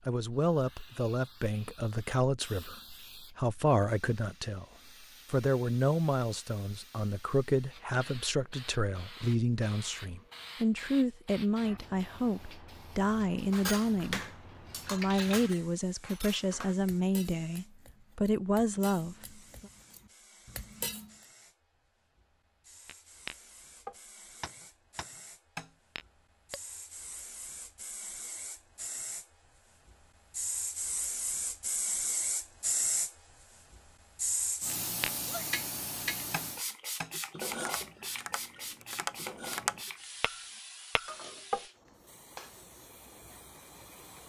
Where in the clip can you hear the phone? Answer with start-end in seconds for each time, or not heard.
not heard.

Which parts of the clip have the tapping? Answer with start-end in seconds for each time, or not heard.
22.9-26.6, 34.7-41.6.